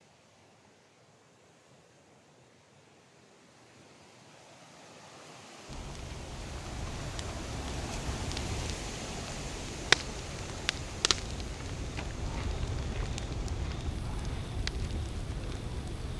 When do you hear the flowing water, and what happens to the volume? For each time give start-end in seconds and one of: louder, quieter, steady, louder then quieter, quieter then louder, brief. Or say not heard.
0.0-16.1 louder then quieter.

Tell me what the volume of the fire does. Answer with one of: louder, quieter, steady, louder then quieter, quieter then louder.
louder then quieter.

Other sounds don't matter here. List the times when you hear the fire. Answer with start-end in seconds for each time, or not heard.
5.7-16.1.